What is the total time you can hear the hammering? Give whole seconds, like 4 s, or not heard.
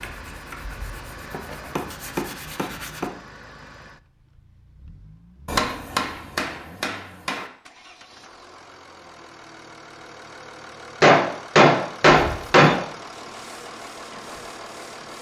6 s.